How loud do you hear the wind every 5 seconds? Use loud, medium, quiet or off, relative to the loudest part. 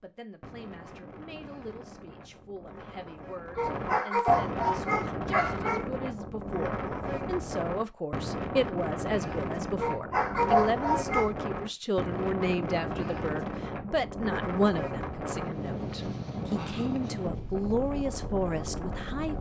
medium, loud, loud, loud.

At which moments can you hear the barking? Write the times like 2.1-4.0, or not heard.
3.5-5.8, 9.8-11.3.